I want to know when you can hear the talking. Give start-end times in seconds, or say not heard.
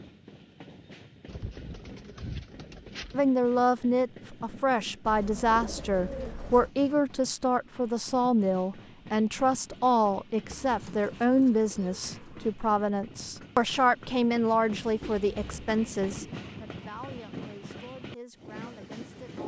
3.1-19.4.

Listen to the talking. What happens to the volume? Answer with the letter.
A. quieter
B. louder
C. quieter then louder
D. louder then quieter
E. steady
A.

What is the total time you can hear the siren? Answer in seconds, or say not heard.
not heard.